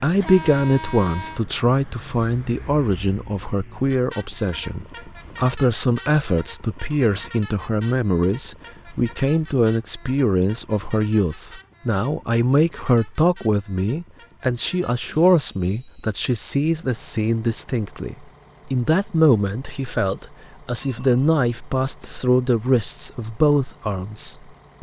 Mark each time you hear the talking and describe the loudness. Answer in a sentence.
You can hear the talking from 0.0 to 24.7 s, at a steady volume.